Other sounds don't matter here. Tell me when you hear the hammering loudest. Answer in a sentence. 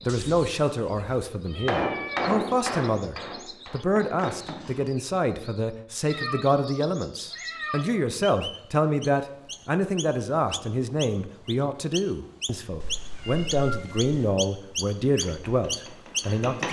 The volume of the hammering peaks at 2 seconds.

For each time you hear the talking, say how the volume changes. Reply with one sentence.
You can hear the talking from 0.0 to 16.6 s, at a steady volume.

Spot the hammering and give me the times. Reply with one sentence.
The hammering can be heard from 1.6 to 4.8 s and from 15.2 to 16.6 s.